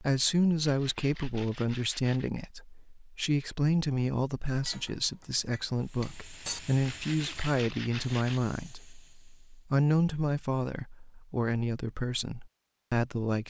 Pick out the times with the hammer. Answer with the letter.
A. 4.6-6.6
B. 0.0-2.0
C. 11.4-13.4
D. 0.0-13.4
A.